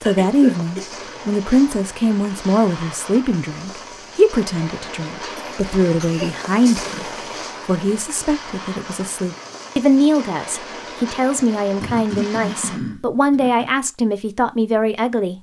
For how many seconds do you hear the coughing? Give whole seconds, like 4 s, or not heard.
4 s.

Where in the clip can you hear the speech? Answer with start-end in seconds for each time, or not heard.
0.0-15.3.